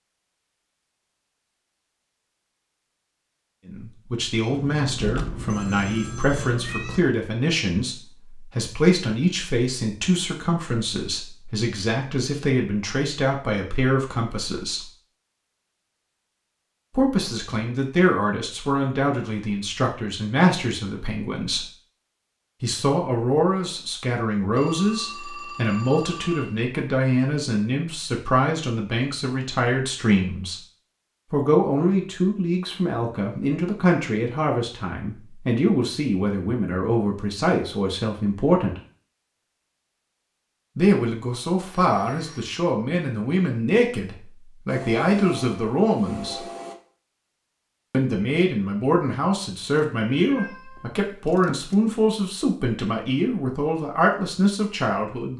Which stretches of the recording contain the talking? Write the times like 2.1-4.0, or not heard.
3.6-14.8, 16.9-21.6, 22.6-30.6, 31.3-38.8, 40.8-46.5, 47.9-55.3.